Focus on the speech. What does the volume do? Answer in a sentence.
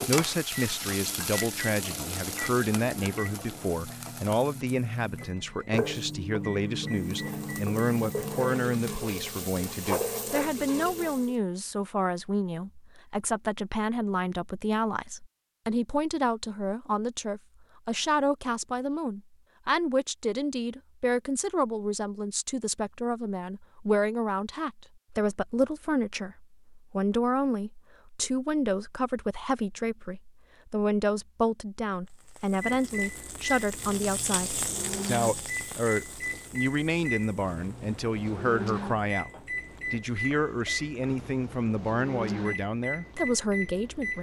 The loudness of the speech stays about the same.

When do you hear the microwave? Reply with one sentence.
You can hear the microwave from 0.0 to 9.0 s and from 32.6 to 44.1 s.